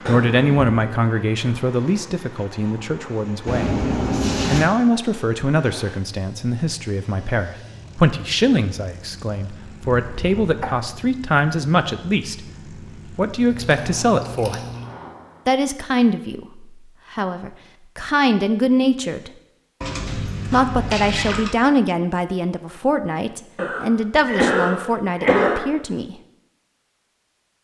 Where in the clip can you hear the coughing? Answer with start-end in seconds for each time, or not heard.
0.1-0.9, 10.0-10.7, 23.6-25.6.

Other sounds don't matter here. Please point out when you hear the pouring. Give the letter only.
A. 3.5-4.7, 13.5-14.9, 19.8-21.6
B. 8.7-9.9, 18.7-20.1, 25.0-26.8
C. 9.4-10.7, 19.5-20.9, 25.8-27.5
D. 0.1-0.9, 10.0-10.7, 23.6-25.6
A.